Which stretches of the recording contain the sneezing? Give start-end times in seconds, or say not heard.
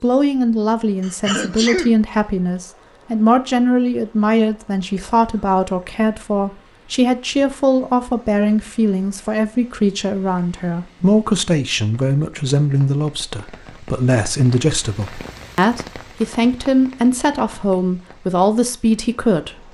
1.0-1.9.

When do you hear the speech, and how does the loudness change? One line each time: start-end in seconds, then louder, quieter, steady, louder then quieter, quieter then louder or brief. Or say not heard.
0.0-19.6 steady.